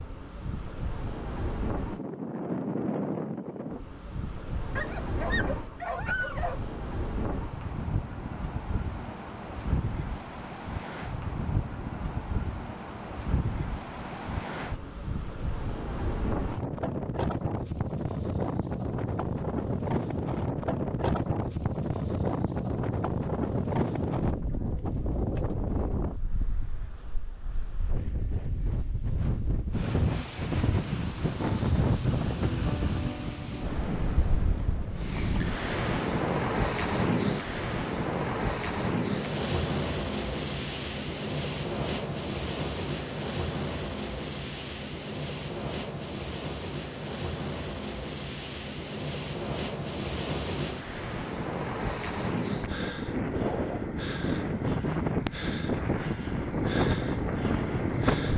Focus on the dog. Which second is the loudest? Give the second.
6 s.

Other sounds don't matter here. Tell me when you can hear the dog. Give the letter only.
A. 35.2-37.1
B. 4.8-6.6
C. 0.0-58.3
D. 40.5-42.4
B.